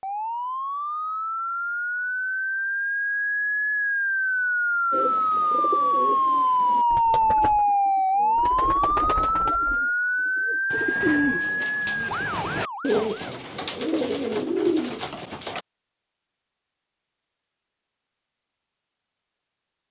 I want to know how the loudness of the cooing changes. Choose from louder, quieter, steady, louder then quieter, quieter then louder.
louder.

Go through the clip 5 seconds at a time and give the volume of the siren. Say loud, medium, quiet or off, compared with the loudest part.
medium, loud, medium, off.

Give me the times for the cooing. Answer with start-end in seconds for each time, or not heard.
4.9-15.6.